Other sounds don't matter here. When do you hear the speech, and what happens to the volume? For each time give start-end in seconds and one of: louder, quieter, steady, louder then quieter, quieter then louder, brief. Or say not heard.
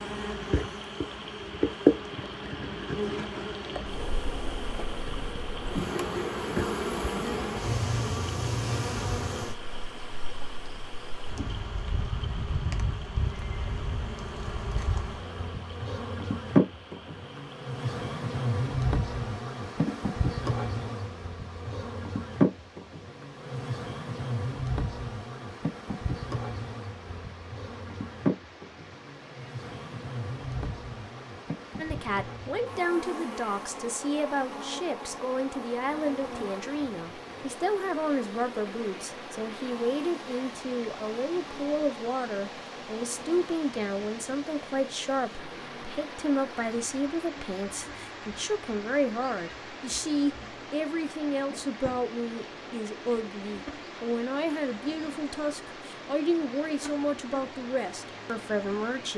31.8-59.1 steady.